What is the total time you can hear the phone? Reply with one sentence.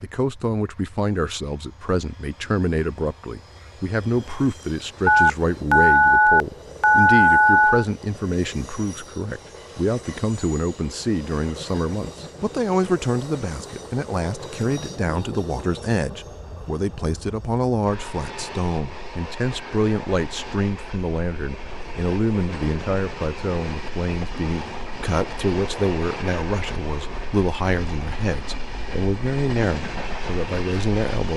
The phone can be heard for 3 seconds in total.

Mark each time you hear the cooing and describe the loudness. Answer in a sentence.
The cooing can't be heard in this clip.